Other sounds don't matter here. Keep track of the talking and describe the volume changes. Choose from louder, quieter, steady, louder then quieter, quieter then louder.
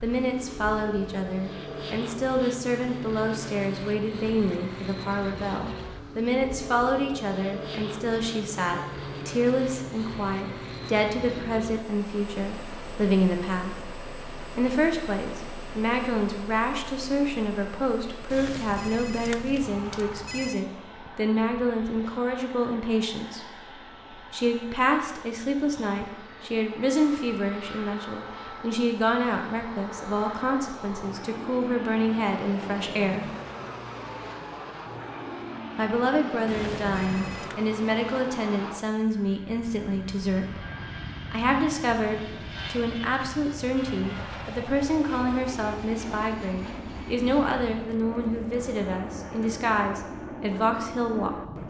steady.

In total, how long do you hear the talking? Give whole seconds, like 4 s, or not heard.
47 s.